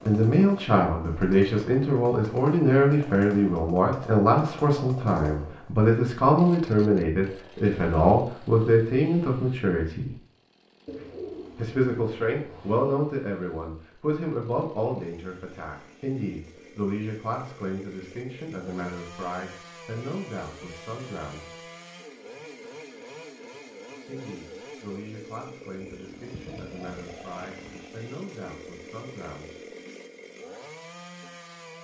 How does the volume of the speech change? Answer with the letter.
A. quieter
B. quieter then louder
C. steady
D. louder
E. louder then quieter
A.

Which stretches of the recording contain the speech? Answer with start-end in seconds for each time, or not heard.
0.1-10.2, 11.6-21.6, 24.1-29.7.